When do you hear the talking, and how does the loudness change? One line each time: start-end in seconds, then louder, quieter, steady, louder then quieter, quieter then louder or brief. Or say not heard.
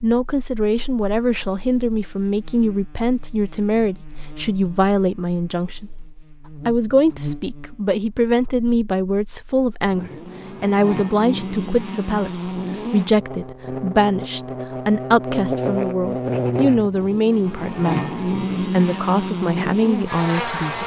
0.0-20.8 steady.